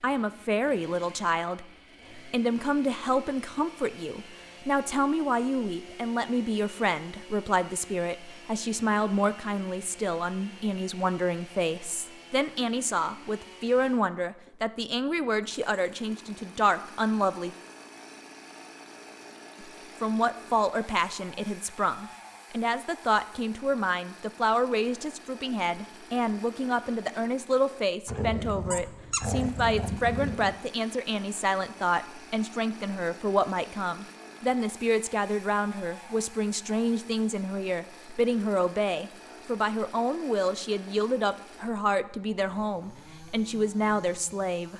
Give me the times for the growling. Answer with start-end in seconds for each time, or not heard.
28.1-30.6.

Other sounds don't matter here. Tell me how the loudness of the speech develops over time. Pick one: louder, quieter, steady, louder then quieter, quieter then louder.
steady.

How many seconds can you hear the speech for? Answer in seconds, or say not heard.
43 s.